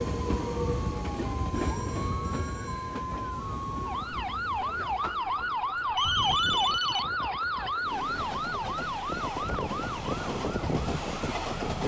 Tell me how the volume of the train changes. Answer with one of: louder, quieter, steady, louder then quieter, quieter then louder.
quieter then louder.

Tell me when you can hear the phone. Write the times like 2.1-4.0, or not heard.
1.5-3.0, 6.0-7.0.